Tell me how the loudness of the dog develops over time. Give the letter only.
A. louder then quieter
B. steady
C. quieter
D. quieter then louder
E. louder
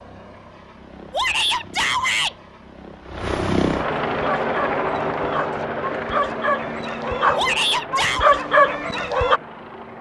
E.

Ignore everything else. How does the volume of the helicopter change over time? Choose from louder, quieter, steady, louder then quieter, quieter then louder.
louder then quieter.